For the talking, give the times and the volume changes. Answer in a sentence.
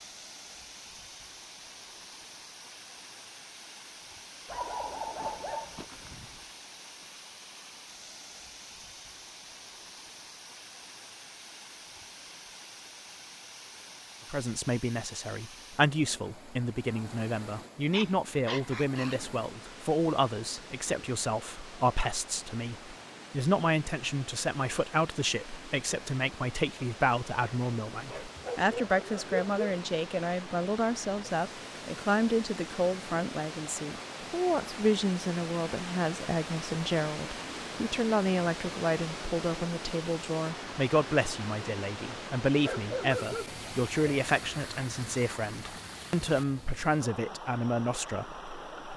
You can hear the talking from 14.3 to 48.9 s, at a steady volume.